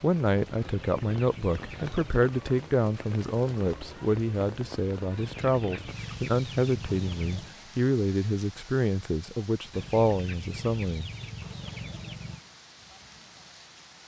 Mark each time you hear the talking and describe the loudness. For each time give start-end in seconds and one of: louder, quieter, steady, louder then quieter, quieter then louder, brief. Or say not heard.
0.0-11.1 steady.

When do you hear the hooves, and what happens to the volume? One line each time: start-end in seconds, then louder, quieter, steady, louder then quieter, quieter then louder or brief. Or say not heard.
not heard.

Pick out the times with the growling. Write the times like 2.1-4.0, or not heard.
not heard.